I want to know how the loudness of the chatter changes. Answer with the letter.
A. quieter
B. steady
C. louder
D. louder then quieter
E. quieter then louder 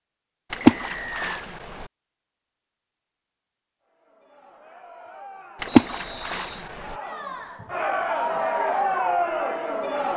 C.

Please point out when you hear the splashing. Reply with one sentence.
You can hear the splashing from 0.5 to 1.9 s and from 5.6 to 7.0 s.